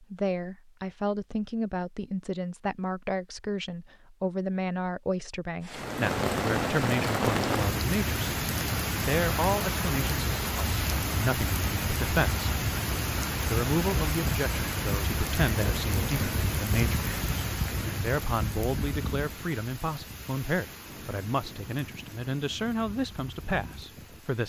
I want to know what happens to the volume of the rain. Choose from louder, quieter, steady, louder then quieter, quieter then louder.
quieter.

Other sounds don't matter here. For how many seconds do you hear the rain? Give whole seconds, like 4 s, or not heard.
19 s.